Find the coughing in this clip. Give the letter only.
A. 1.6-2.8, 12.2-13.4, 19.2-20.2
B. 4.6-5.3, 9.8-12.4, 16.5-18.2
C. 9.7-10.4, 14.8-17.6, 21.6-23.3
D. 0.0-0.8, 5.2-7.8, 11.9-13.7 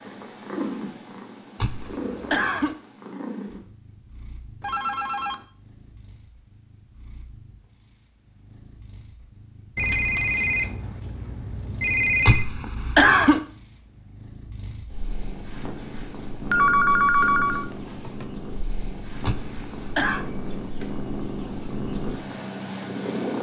A.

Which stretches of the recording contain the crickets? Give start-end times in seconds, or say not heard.
not heard.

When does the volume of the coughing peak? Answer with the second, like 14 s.
13 s.